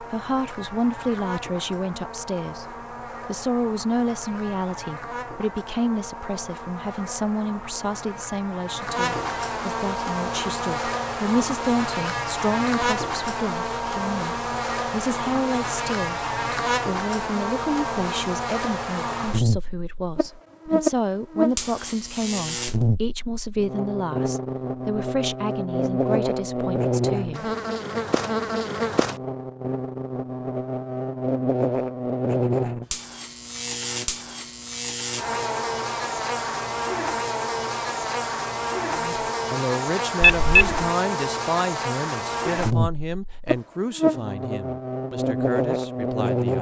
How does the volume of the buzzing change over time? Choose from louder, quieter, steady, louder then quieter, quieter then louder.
louder.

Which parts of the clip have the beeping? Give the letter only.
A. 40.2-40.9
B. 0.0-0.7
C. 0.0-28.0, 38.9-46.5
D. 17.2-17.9
A.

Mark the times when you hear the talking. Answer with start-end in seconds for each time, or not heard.
0.0-28.0, 38.9-46.5.